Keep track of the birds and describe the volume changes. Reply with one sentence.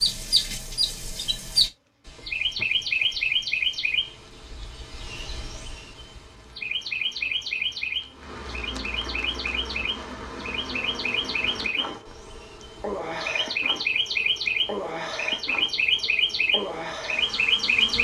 The loudness of the birds goes down, then up.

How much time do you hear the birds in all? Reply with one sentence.
The birds can be heard for 18 seconds in total.